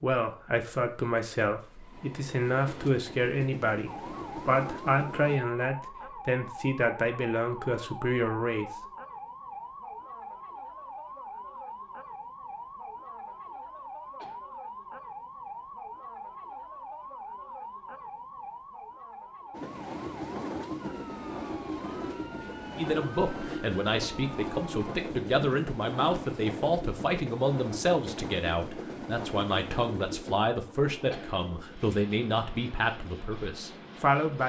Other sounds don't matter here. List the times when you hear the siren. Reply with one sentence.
You can hear the siren from 3.9 to 24.9 s.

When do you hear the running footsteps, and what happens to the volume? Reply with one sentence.
The running footsteps can't be heard in this clip.